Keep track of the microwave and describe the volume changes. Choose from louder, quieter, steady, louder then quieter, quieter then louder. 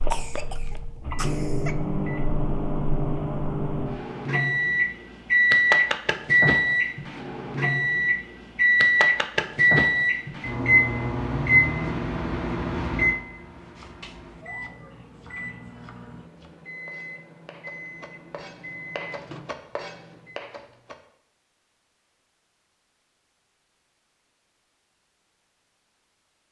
louder then quieter.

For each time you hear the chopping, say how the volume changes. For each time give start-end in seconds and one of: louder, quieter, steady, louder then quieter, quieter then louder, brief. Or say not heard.
13.8-20.9 louder.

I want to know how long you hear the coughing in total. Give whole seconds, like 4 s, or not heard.
2 s.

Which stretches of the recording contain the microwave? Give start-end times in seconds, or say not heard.
0.0-20.4.